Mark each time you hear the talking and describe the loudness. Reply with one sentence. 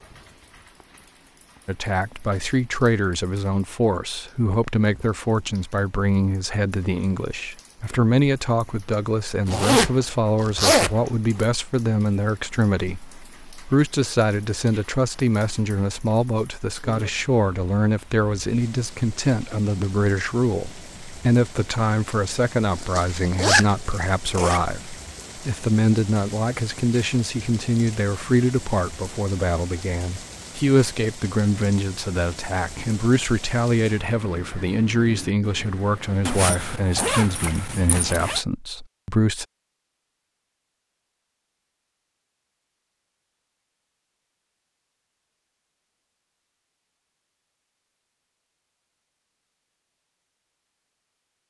The talking can be heard from 1.6 to 39.5 s, at a steady volume.